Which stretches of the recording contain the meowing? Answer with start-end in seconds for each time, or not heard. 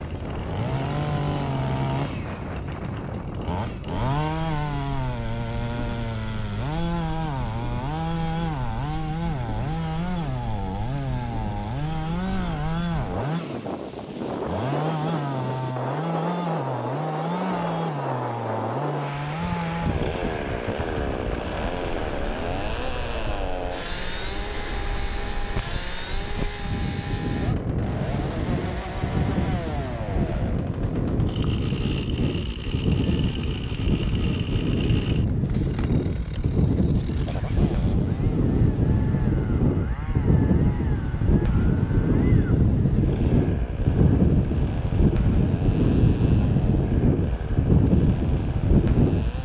not heard.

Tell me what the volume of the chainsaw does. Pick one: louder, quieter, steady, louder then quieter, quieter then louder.
quieter.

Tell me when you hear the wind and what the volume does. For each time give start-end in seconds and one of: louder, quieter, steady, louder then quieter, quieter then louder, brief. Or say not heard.
0.0-49.4 louder.